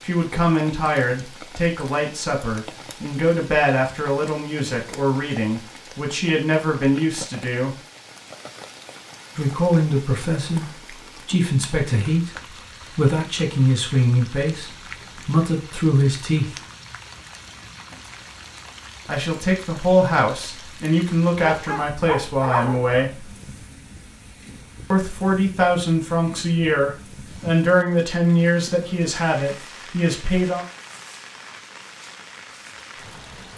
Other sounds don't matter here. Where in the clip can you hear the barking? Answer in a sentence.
You can hear the barking from 21.4 to 23.0 s.